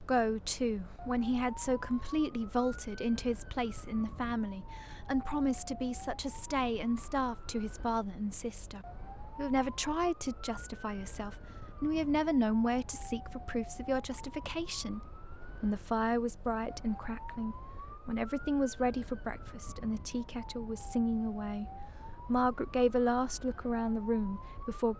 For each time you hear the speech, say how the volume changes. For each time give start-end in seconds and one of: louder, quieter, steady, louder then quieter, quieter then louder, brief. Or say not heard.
0.0-24.9 steady.